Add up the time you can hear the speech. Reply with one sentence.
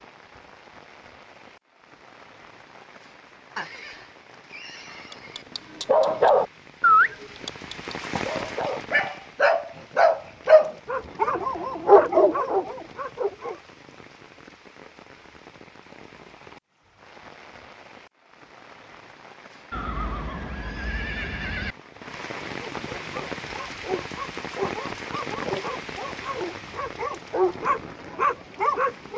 You can't hear the speech here.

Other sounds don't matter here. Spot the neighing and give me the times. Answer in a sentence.
The neighing can be heard from 3.5 to 5.5 s and from 19.7 to 21.8 s.